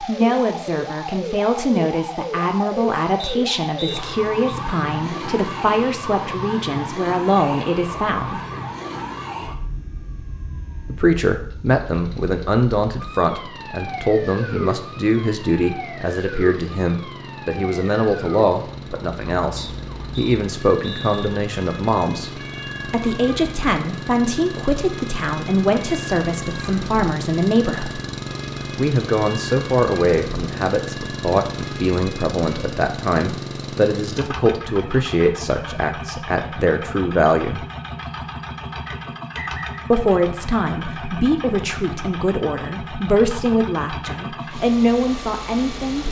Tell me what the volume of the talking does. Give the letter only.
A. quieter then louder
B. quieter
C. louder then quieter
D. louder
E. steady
E.